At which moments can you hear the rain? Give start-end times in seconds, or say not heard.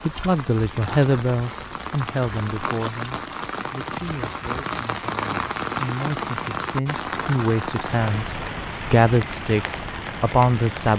0.0-10.9.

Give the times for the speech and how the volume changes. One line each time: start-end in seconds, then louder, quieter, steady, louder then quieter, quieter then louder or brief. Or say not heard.
0.1-10.9 quieter then louder.